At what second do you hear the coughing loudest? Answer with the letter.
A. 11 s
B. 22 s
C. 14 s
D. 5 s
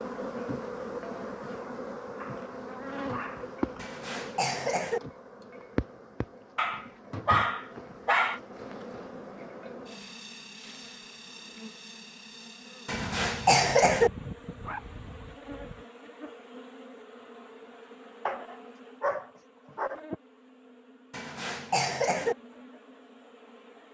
C.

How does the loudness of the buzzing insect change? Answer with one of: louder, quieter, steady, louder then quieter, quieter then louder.
quieter.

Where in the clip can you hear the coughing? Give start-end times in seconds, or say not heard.
3.8-5.0, 12.8-14.1, 21.1-22.4.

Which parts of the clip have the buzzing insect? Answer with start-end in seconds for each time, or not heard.
0.0-23.9.